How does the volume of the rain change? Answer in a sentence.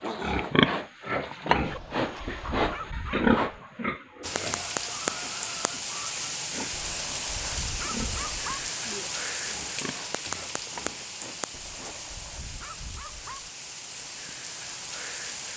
The volume of the rain goes down.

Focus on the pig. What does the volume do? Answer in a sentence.
The loudness of the pig goes down.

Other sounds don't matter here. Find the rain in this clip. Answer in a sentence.
You can hear the rain from 4.2 to 15.5 s.